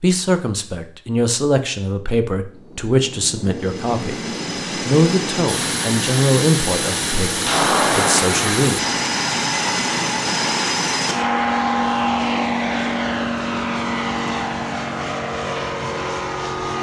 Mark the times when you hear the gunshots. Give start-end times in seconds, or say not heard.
7.5-8.8.